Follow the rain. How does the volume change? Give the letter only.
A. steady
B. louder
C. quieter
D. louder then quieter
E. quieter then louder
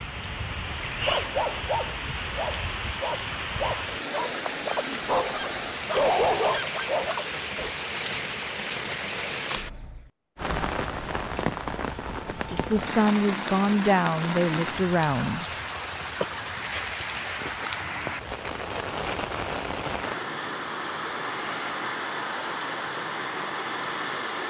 A.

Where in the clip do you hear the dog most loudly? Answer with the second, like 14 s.
6 s.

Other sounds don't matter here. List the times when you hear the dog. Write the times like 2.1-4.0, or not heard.
1.1-7.8.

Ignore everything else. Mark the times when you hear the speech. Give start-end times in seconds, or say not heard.
12.2-15.4.